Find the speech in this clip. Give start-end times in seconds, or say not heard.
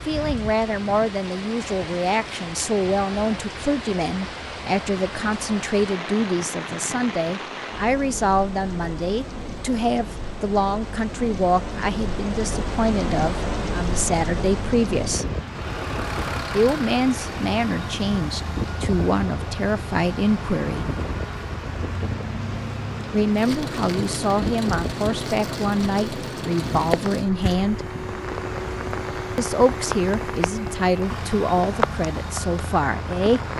0.1-15.2, 16.5-20.9, 23.1-27.9, 29.4-33.5.